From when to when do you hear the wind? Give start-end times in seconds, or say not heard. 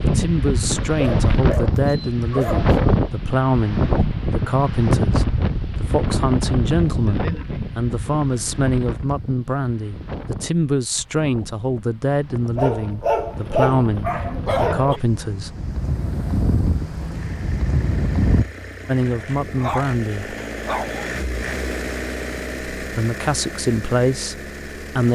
0.0-18.4.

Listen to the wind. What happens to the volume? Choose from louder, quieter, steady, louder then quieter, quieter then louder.
quieter then louder.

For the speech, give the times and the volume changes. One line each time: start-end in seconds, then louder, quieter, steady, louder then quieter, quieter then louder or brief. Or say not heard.
0.0-15.7 steady
18.9-20.4 brief
22.8-25.1 brief.